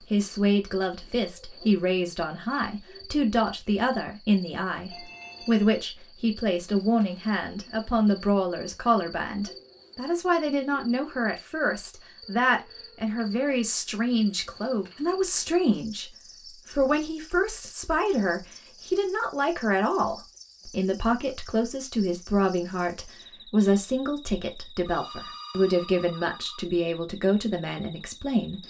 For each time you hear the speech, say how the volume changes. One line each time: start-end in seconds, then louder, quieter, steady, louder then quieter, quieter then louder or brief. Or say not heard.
0.1-28.6 steady.